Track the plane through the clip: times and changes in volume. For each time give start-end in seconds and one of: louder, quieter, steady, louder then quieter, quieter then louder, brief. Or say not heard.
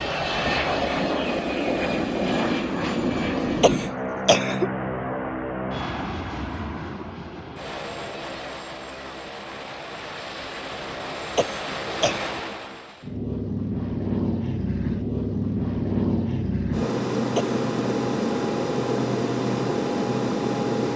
0.0-20.9 quieter then louder.